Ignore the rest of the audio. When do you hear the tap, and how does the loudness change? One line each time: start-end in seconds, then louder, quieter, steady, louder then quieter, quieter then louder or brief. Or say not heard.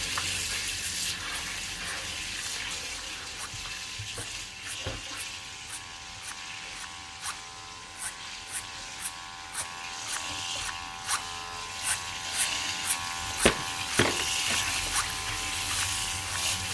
0.0-16.6 quieter then louder.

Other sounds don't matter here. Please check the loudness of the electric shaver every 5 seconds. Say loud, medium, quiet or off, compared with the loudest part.
quiet, medium, loud, loud.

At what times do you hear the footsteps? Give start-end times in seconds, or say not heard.
13.3-14.6.